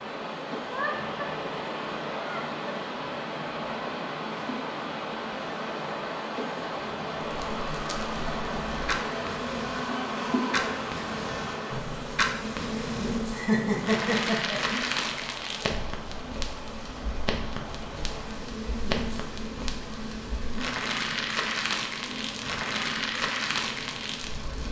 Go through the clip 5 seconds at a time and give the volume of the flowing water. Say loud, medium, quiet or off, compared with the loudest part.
loud, loud, medium, medium, medium.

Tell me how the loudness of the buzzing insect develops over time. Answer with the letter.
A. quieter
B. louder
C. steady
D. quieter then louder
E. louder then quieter
E.